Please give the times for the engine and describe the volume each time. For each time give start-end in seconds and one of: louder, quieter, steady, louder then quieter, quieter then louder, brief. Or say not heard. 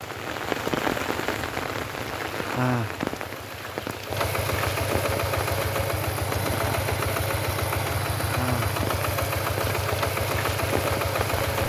0.0-11.6 louder.